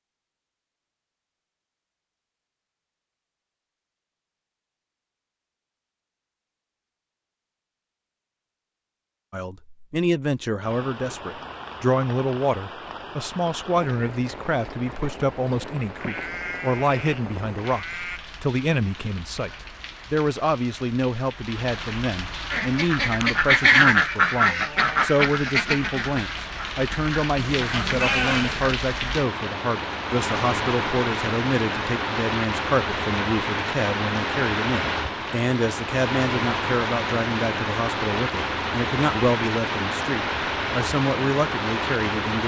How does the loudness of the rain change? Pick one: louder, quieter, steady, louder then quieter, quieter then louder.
louder.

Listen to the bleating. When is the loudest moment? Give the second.
28 s.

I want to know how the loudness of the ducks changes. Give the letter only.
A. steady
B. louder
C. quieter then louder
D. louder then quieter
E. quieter
C.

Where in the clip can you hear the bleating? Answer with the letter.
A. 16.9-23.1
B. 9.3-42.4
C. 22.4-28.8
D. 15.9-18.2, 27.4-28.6
D.